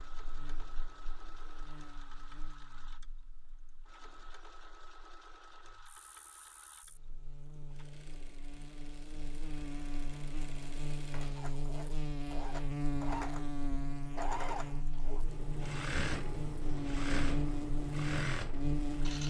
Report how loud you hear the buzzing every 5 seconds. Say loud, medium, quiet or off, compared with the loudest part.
quiet, quiet, loud, loud.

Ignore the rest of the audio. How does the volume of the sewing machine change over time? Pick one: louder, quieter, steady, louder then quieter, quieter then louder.
louder.